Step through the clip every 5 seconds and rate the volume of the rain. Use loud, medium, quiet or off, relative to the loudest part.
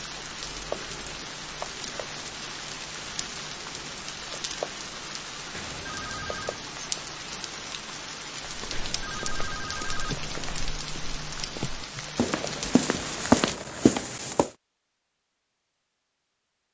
loud, loud, loud, off.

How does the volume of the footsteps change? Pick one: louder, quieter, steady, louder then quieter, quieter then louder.
louder.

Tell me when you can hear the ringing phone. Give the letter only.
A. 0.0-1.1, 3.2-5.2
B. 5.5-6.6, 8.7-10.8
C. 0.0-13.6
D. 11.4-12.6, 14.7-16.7
B.